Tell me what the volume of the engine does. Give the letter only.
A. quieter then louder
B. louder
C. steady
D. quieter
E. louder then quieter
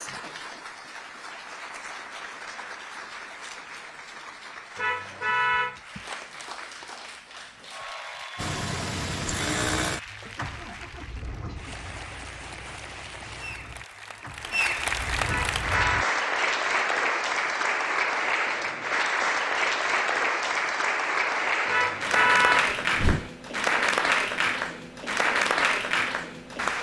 A.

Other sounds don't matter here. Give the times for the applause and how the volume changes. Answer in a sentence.
The applause can be heard from 0.0 to 26.7 s, getting louder.